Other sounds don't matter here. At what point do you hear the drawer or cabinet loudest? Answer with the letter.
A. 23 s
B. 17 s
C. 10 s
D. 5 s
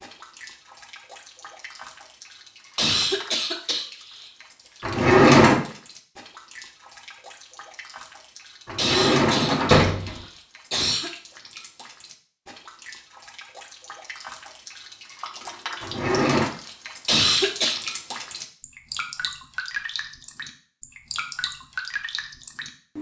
D.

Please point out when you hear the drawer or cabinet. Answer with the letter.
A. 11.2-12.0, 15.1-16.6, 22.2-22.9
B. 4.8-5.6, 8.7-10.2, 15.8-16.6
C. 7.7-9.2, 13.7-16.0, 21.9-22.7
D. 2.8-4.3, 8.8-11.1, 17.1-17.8
B.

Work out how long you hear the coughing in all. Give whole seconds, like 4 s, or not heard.
5 s.